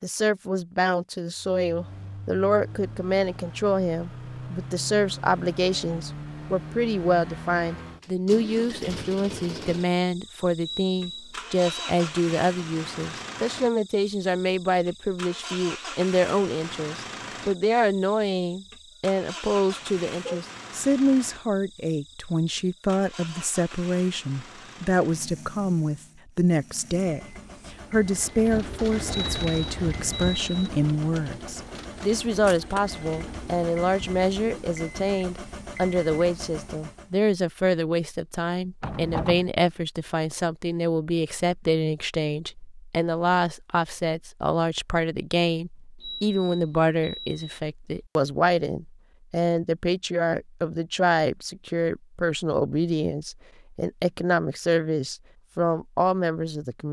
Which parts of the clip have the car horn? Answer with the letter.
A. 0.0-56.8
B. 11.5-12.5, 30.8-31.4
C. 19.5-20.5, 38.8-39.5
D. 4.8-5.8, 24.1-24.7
C.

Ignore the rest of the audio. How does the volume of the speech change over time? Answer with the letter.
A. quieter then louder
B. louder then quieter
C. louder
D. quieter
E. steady
E.